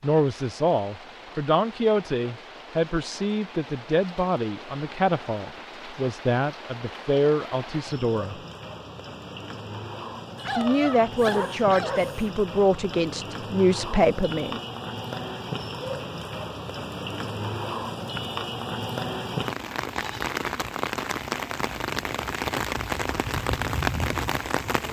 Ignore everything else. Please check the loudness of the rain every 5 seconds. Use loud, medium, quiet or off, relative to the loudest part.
quiet, medium, medium, loud, loud.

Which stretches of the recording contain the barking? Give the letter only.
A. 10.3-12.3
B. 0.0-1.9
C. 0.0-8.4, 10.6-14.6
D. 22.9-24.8
A.